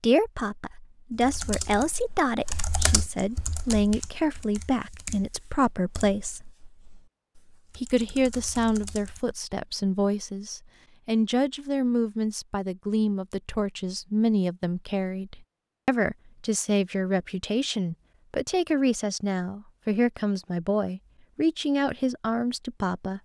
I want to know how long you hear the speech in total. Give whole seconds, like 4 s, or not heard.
22 s.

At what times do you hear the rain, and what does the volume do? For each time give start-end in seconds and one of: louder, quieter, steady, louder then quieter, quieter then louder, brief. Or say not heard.
not heard.